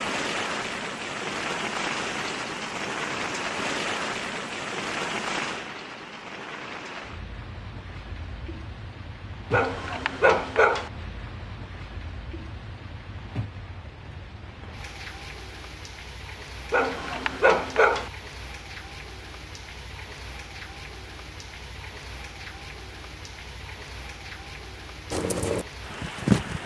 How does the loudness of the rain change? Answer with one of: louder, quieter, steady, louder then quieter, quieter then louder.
quieter.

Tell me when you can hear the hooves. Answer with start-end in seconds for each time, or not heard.
25.1-26.6.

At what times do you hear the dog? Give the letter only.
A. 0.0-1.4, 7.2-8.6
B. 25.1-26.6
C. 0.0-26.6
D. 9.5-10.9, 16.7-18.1
D.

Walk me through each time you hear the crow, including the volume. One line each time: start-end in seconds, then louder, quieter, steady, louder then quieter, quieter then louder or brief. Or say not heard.
not heard.